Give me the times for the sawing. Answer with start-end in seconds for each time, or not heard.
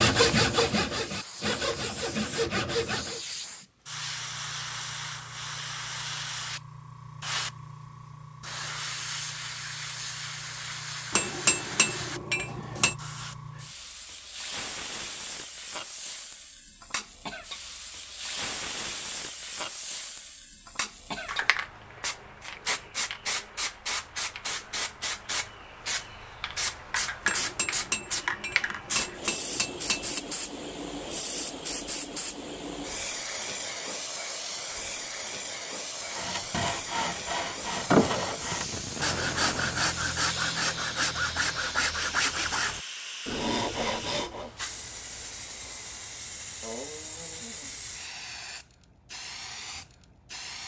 0.0-3.2, 36.0-44.5.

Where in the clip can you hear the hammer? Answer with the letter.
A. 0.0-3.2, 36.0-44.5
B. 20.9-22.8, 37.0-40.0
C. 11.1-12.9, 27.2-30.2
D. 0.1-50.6
C.